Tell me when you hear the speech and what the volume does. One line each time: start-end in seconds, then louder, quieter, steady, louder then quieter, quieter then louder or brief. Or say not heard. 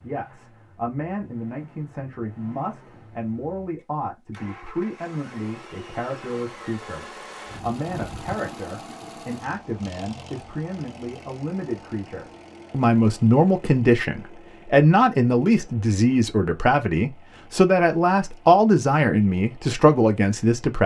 0.0-20.8 louder.